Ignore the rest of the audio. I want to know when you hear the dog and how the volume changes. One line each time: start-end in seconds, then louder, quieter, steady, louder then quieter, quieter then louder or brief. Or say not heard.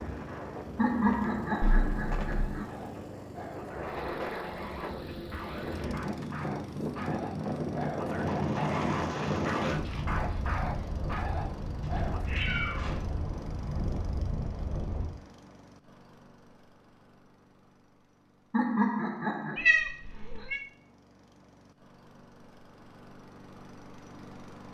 2.6-12.3 louder.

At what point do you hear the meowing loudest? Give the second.
20 s.